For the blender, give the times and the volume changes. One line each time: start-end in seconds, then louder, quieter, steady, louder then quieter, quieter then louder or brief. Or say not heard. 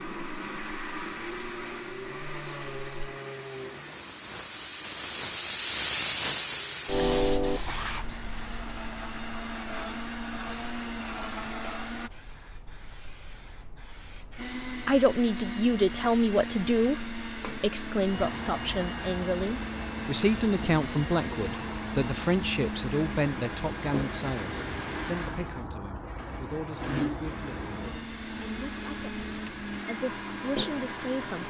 0.0-12.1 quieter then louder
14.3-31.4 steady.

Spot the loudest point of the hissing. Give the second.
6 s.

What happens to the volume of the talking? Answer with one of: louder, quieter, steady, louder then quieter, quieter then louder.
quieter.